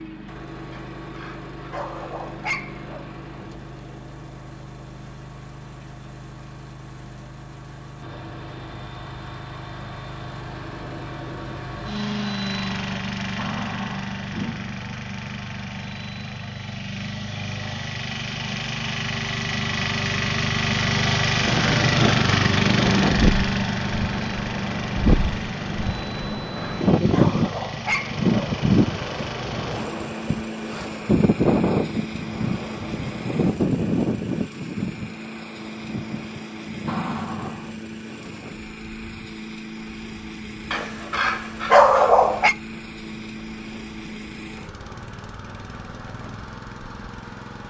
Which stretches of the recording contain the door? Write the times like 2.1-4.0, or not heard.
13.3-14.8, 36.9-37.8.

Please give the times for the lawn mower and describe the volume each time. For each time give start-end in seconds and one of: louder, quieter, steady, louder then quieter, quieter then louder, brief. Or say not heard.
0.0-47.6 louder then quieter.